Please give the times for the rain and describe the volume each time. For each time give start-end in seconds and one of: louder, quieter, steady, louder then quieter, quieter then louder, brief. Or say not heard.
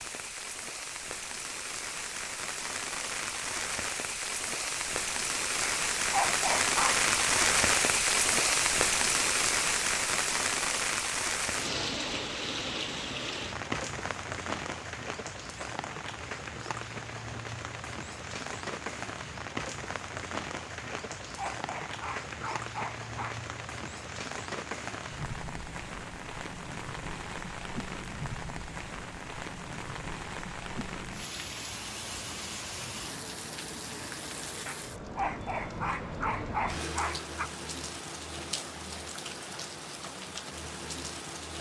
0.0-41.5 quieter.